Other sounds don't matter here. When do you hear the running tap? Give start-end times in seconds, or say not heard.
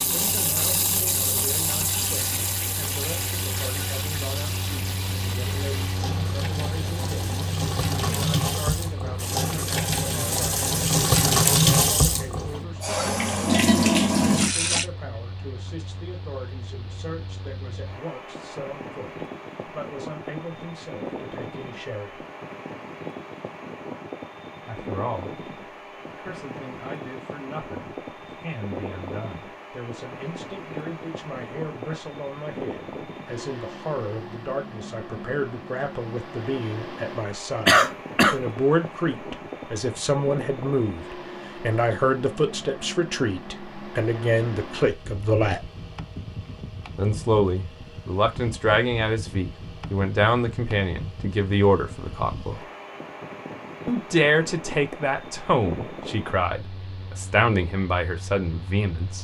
0.0-14.8.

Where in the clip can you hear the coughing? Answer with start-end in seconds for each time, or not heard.
37.6-38.4.